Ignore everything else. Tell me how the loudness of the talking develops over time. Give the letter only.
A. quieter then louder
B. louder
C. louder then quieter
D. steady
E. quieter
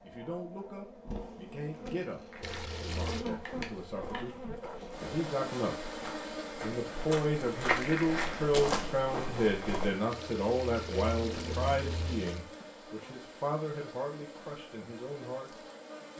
C.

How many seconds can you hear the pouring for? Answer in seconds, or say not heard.
3 s.